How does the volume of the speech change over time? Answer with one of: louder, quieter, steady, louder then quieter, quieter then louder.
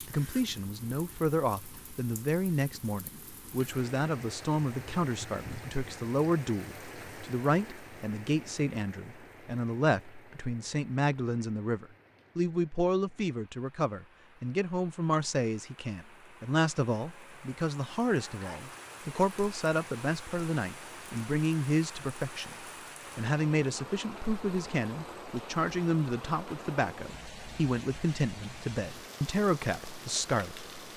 steady.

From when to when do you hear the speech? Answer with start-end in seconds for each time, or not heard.
0.1-30.7.